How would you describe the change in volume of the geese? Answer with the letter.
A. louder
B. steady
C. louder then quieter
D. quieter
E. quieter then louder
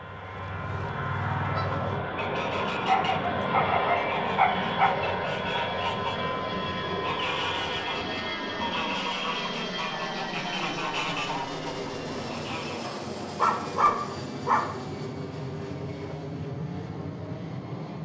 B.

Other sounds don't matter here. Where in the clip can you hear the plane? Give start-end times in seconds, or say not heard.
0.0-18.0.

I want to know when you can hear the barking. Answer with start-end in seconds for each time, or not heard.
2.9-4.9, 12.8-14.8.